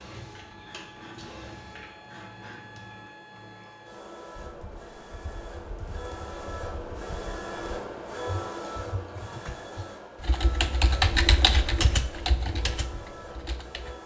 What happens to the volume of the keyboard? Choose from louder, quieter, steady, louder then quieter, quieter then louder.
louder then quieter.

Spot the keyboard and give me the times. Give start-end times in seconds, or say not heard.
4.3-14.0.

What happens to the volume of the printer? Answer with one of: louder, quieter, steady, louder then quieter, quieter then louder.
louder then quieter.